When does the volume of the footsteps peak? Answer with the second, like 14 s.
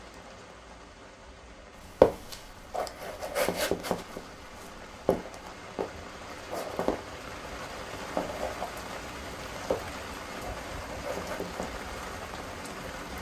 2 s.